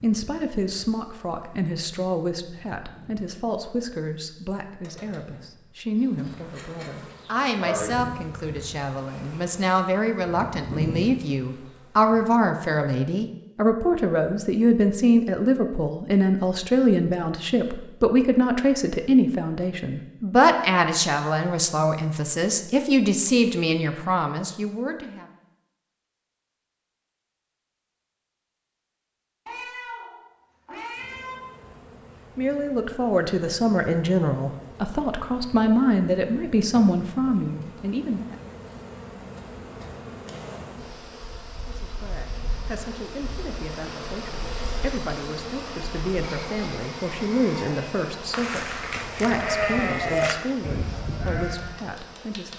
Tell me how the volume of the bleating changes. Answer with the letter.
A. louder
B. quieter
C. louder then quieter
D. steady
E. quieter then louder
C.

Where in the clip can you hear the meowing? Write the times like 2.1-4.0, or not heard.
29.4-31.4.